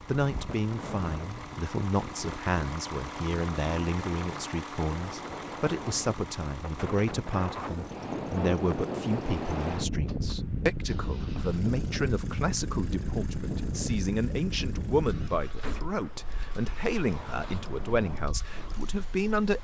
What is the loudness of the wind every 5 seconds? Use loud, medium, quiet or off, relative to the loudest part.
medium, loud, loud, medium.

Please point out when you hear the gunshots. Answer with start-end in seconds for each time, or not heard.
15.6-16.2.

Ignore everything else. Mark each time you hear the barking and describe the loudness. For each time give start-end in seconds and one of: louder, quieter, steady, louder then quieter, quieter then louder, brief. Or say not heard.
not heard.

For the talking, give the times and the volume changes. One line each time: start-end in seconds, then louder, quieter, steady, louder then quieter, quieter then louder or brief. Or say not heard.
0.1-19.5 steady.